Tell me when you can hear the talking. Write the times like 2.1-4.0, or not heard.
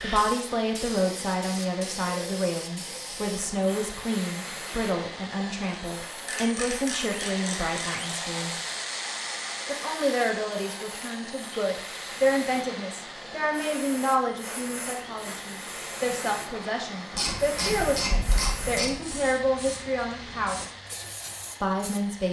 0.0-8.6, 9.7-20.6, 21.6-22.2.